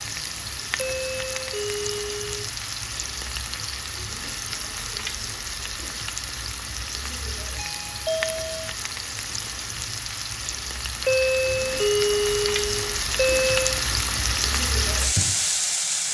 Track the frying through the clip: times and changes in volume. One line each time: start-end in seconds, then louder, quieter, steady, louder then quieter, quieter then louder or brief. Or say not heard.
0.0-16.0 louder.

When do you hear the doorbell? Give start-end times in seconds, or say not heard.
0.8-2.4, 7.5-8.7, 11.1-13.8.